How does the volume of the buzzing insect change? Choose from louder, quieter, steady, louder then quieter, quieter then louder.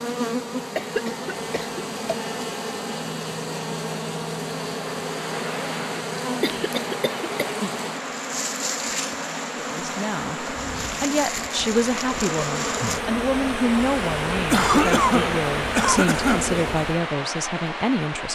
steady.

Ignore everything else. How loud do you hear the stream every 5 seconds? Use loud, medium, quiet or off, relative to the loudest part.
off, medium, loud, loud.